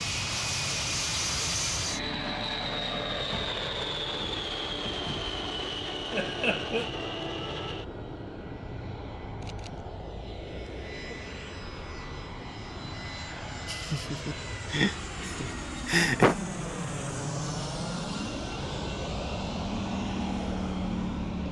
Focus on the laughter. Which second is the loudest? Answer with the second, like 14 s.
16 s.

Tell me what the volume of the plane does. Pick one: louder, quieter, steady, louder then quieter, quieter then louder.
quieter then louder.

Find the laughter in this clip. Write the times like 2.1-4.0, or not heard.
6.1-6.8, 13.7-16.4.